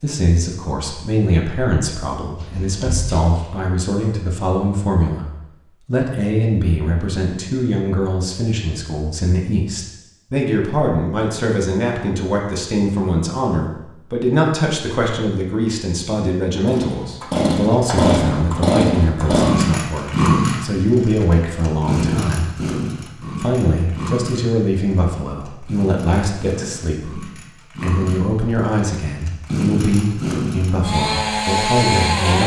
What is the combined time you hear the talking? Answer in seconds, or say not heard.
32 s.